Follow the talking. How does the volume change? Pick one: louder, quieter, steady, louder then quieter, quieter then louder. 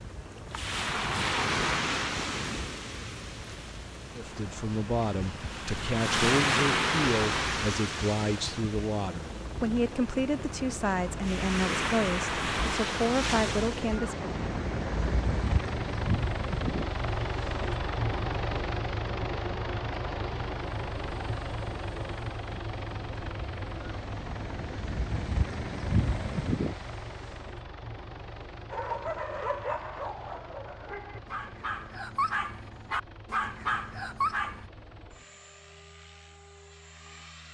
steady.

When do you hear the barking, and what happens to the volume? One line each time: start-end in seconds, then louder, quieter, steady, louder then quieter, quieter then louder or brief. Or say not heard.
28.7-34.6 quieter then louder.